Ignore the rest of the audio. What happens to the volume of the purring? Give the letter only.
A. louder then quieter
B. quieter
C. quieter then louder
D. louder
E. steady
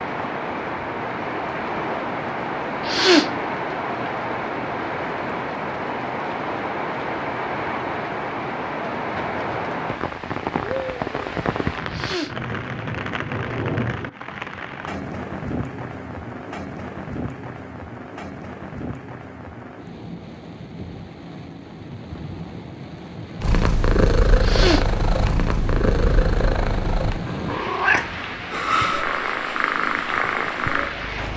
E.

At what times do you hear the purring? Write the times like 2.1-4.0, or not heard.
23.4-31.3.